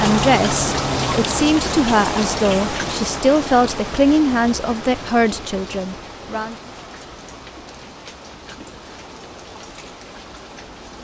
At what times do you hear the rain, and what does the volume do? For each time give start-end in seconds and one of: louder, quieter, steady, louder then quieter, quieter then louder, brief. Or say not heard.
0.0-10.9 quieter.